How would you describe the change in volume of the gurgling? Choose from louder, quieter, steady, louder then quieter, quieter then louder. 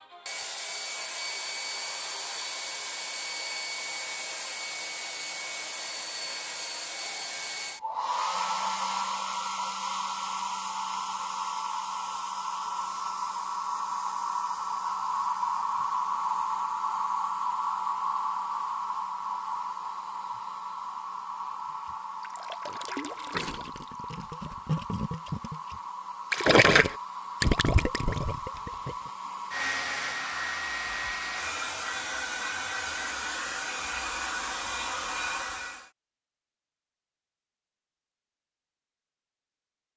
louder then quieter.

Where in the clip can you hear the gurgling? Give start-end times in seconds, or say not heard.
21.9-29.1.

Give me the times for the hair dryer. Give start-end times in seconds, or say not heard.
0.0-35.9.